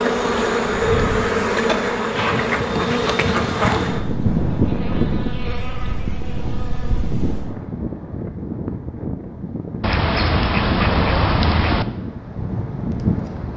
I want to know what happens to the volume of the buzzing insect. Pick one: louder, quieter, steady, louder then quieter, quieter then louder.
quieter.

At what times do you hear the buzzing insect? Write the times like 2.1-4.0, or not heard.
0.0-7.5.